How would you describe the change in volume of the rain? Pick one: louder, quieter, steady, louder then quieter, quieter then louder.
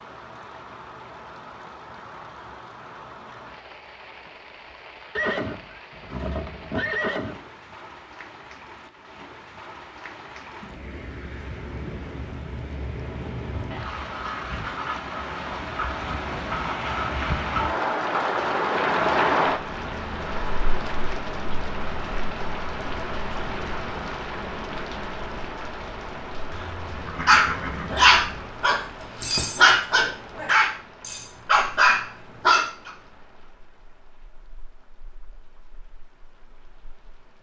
louder then quieter.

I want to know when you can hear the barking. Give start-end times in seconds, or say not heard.
27.2-32.9.